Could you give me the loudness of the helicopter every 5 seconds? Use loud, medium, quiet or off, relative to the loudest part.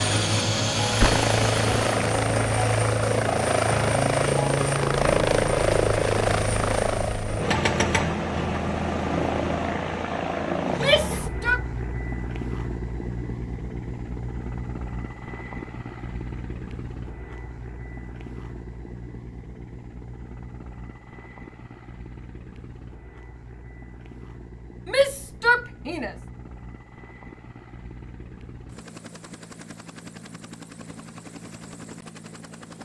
loud, loud, medium, quiet, quiet, quiet, quiet.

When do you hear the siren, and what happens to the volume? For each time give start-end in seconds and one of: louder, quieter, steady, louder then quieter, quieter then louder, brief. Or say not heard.
not heard.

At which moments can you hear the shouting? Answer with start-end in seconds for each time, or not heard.
10.7-11.6, 24.9-26.1.